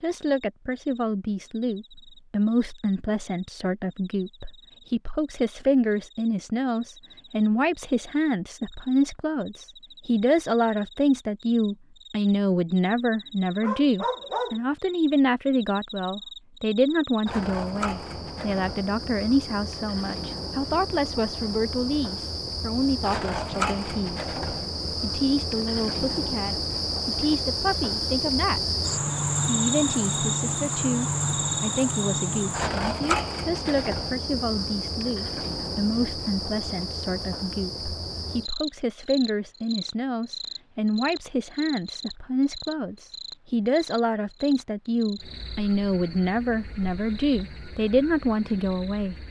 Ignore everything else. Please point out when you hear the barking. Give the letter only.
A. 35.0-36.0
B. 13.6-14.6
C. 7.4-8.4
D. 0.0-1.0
B.